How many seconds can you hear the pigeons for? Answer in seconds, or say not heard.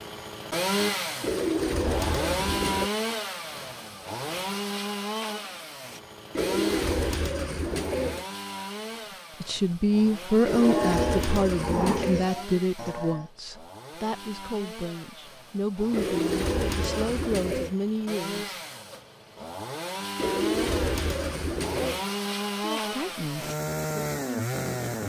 9 s.